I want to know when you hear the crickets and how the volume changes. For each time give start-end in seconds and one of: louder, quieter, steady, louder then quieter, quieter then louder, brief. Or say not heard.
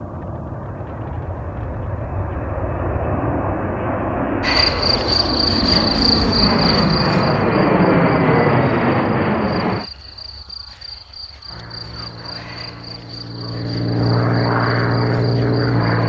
4.4-16.0 quieter.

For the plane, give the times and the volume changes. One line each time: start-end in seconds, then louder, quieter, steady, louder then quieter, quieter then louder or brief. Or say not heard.
0.0-9.9 louder
11.4-16.0 louder.